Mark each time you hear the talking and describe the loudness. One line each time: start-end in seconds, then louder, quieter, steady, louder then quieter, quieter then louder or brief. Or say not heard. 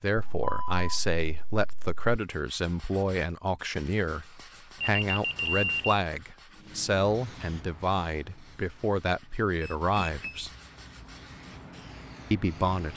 0.0-10.5 steady
12.3-12.9 brief.